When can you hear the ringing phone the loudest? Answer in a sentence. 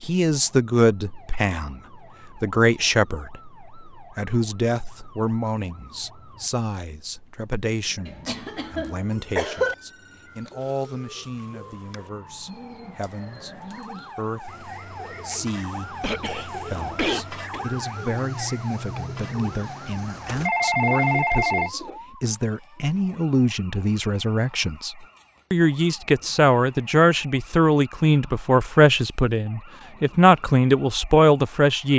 The volume of the ringing phone peaks at 21 seconds.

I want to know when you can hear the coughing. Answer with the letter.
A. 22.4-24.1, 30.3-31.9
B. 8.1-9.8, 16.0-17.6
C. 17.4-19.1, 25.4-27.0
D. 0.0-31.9
B.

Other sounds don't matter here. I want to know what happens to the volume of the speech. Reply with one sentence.
The volume of the speech goes down, then up.